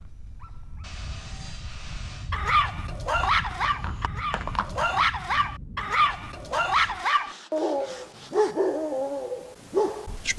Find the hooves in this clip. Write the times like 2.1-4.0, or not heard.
3.1-5.0.